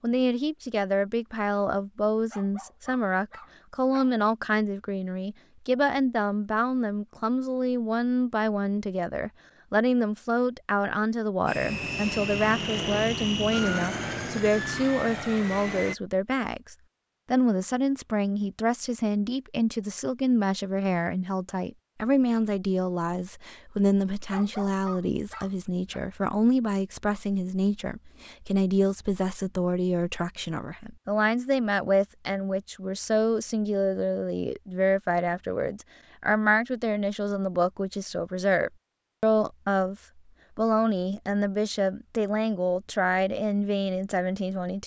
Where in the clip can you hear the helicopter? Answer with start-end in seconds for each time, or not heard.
11.4-15.9.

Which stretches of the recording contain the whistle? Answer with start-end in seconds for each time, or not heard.
not heard.